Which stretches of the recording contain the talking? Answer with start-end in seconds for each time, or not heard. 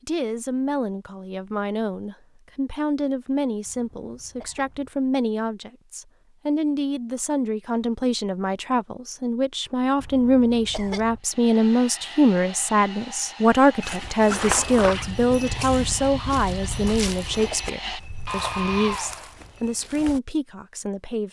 0.1-21.2.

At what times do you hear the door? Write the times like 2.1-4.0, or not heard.
not heard.